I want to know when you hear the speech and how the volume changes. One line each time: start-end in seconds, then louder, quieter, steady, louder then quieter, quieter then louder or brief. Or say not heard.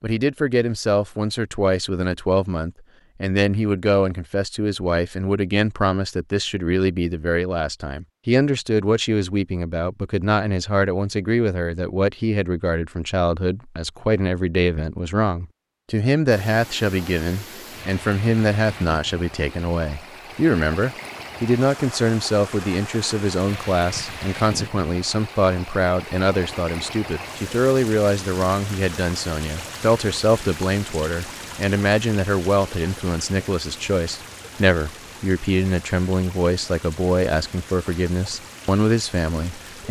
0.0-39.8 steady.